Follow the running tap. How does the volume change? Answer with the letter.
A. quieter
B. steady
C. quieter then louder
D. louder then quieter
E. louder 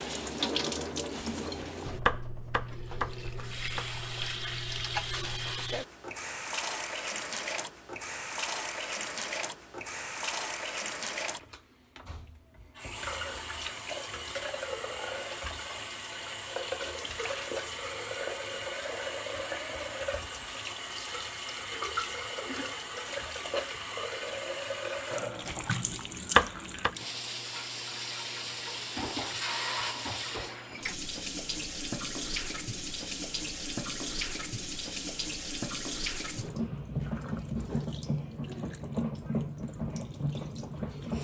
B.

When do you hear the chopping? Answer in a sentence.
You can hear the chopping from 1.1 to 3.9 s and from 25.4 to 26.9 s.